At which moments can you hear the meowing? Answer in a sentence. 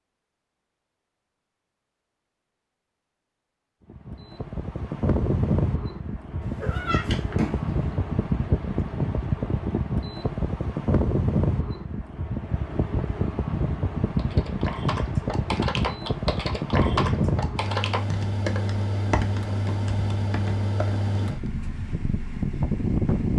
The meowing can be heard from 6.4 to 7.8 s.